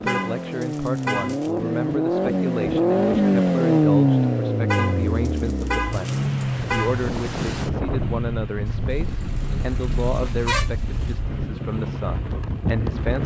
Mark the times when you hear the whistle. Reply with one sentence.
You can't hear the whistle here.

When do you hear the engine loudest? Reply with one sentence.
The loudest moment of the engine is at 4 seconds.